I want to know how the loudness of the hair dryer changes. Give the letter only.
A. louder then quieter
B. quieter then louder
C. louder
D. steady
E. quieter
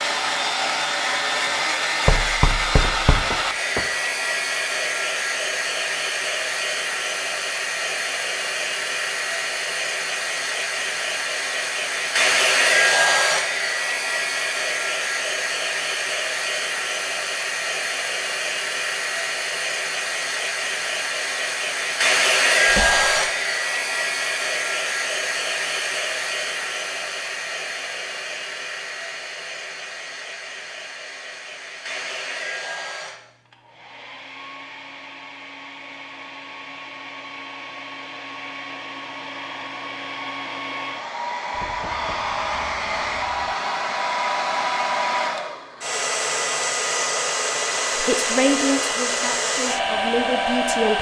B.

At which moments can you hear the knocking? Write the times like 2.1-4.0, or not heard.
2.0-3.9, 22.6-23.1, 41.5-43.5.